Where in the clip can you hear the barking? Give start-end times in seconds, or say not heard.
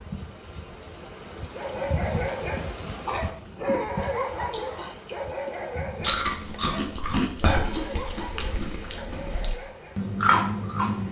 1.5-10.1.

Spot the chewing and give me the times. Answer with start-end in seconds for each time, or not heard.
3.0-3.7, 4.5-11.0.